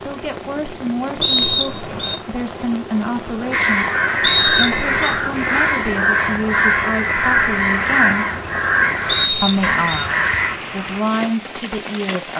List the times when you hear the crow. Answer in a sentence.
You can hear the crow from 3.5 to 10.6 s.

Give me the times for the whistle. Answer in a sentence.
The whistle can be heard from 1.2 to 2.1 s, from 4.2 to 5.2 s and from 9.1 to 10.1 s.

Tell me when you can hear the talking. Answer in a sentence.
You can hear the talking from 0.1 to 3.9 s, from 4.5 to 8.2 s and from 9.4 to 12.3 s.